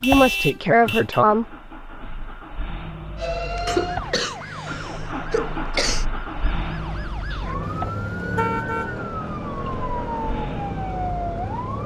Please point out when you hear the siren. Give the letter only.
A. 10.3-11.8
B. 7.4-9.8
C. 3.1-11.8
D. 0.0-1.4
C.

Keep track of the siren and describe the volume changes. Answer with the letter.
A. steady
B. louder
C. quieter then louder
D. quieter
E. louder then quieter
C.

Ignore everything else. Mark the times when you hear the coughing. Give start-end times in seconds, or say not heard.
3.6-6.0.